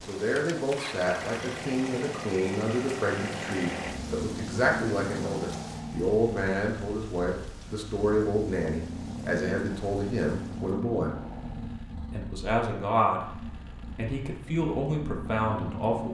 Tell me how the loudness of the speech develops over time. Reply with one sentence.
The loudness of the speech stays about the same.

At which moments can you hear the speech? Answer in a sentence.
The speech can be heard from 0.1 to 11.1 s and from 12.1 to 16.0 s.